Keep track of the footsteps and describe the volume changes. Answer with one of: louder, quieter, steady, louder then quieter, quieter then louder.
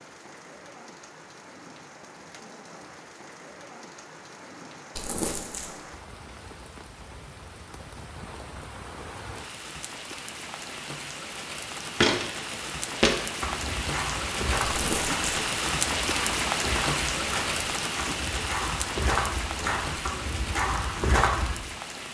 quieter then louder.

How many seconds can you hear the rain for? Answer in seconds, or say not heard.
22 s.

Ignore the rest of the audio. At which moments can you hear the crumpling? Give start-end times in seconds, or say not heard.
5.0-5.7, 14.6-15.2.